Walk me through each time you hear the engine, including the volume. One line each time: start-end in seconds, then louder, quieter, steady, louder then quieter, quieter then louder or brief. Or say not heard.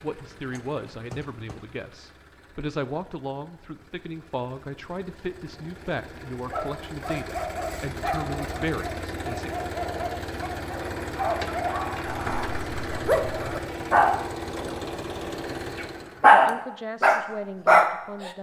0.0-16.2 louder.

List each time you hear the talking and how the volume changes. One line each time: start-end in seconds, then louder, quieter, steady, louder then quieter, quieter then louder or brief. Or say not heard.
0.0-9.5 steady
16.3-18.3 brief.